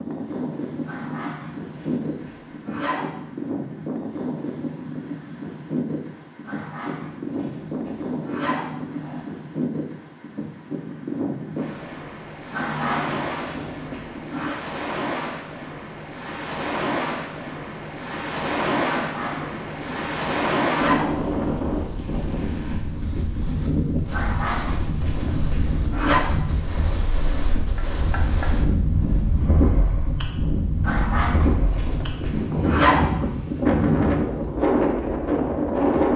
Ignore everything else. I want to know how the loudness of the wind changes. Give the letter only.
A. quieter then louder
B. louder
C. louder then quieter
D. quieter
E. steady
B.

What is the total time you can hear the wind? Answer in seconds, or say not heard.
36 s.